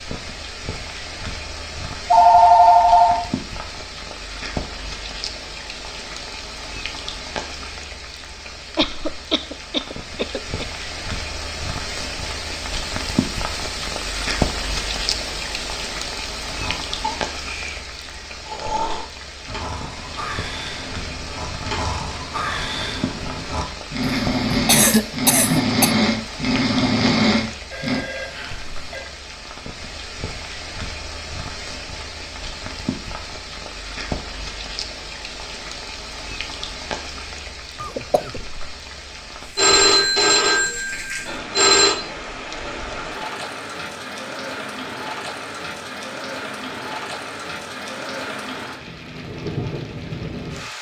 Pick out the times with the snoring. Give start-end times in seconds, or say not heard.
16.4-28.0.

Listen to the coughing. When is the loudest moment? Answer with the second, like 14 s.
25 s.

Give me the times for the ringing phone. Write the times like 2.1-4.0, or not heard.
2.1-3.2, 27.7-29.1, 39.5-42.0.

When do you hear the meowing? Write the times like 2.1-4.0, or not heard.
not heard.